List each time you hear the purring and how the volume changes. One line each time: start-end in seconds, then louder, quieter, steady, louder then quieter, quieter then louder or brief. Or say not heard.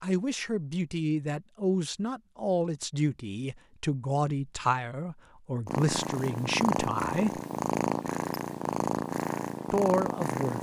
5.7-10.5 steady.